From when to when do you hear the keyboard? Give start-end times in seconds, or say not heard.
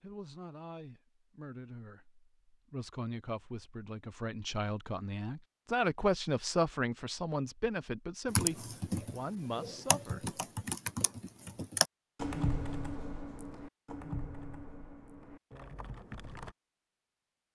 8.3-16.6.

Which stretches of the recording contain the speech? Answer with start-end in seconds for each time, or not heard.
0.0-10.4.